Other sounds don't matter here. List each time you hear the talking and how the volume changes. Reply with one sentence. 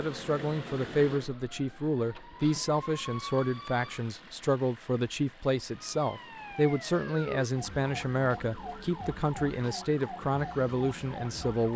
The talking can be heard from 0.0 to 11.7 s, at a steady volume.